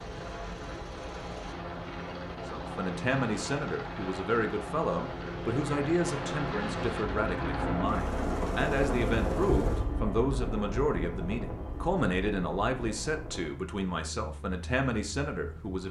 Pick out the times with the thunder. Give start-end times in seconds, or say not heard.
6.0-9.8.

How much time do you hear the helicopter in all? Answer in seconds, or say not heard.
16 s.